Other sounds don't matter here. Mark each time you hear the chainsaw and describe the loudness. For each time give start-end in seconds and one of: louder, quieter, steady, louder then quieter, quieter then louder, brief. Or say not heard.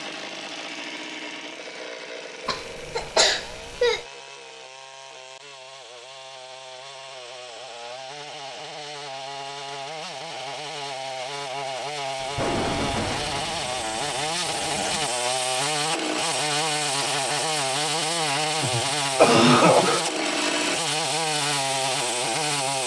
0.0-22.8 louder.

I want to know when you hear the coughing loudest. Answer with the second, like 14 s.
19 s.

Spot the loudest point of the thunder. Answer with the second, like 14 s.
13 s.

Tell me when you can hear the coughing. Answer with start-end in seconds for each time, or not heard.
2.5-4.0, 18.6-20.1.